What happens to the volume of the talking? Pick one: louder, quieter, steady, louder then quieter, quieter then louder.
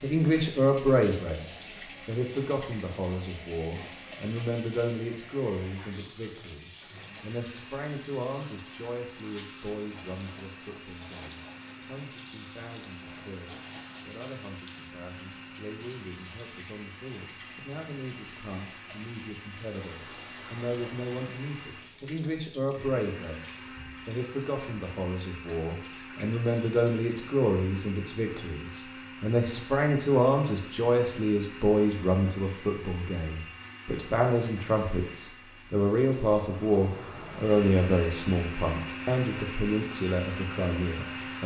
quieter then louder.